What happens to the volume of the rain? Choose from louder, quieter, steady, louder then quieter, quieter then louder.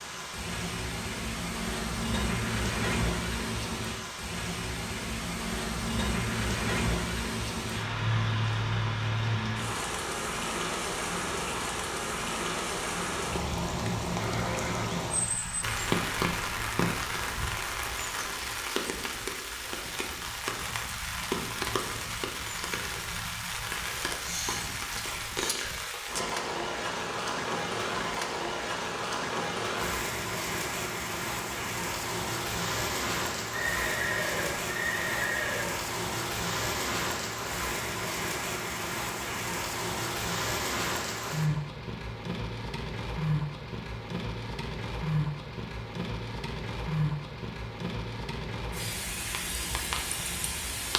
steady.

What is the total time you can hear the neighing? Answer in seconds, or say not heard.
3 s.